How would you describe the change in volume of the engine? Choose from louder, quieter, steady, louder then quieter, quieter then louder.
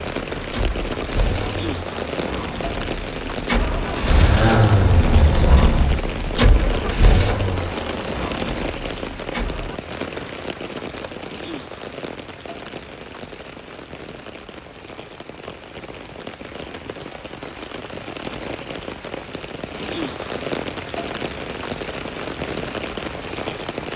louder then quieter.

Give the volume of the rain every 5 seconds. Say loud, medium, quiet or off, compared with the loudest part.
loud, loud, medium, medium, loud.